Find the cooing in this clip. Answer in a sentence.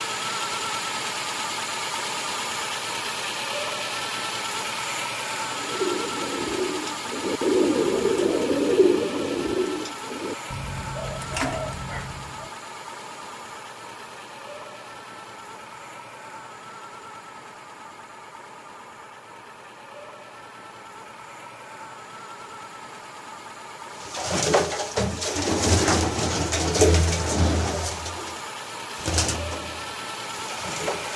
The cooing can be heard from 5.4 to 12.5 s and from 24.0 to 31.1 s.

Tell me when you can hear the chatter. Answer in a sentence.
The chatter can't be heard in this clip.